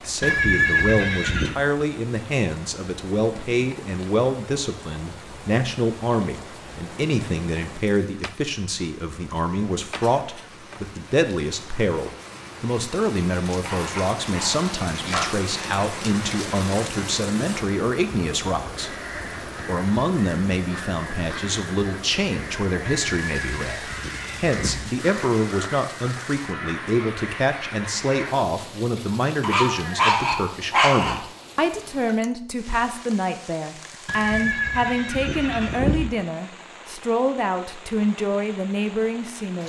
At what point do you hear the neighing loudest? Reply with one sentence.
The volume of the neighing peaks at 1 second.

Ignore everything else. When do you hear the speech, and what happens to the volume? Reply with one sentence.
You can hear the speech from 0.0 to 18.9 s, at a steady volume; and from 19.6 to 39.6 s, at a steady volume.